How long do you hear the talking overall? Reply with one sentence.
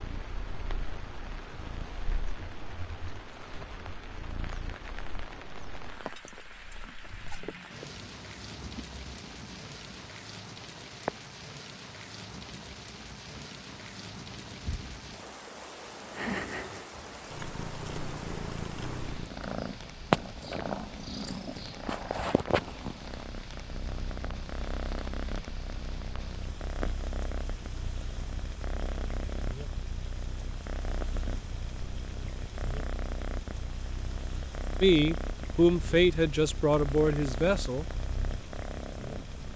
You can hear the talking for 3 seconds altogether.